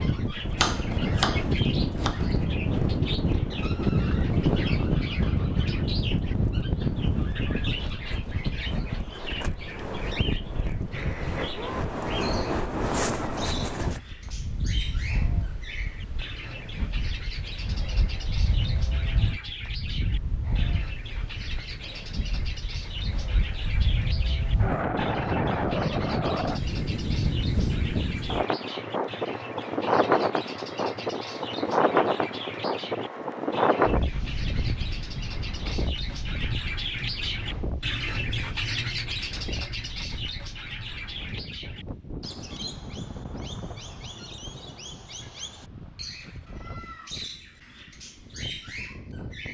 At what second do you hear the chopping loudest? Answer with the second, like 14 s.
1 s.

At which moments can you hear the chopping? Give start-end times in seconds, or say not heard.
0.6-2.5.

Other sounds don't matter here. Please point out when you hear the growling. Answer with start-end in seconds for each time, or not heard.
not heard.